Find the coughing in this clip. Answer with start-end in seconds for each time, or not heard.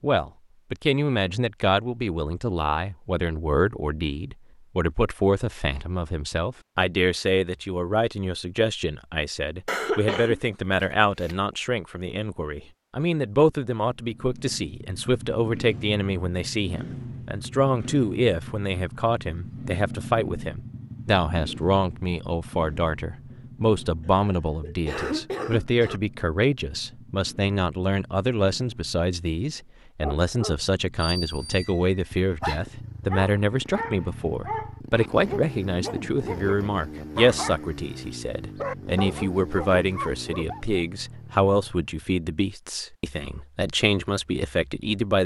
9.7-11.3, 24.1-26.0.